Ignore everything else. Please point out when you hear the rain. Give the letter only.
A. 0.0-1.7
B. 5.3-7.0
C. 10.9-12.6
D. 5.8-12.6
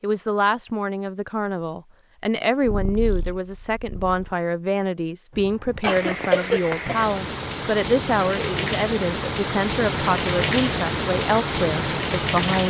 D.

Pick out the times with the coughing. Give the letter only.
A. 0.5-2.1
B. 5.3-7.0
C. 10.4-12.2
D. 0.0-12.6
B.